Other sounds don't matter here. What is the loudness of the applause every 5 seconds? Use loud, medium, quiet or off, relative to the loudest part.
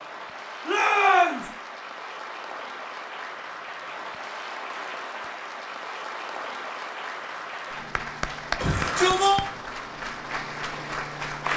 medium, loud, loud.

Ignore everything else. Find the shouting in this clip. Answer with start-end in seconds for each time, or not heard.
0.7-1.5, 8.6-9.4.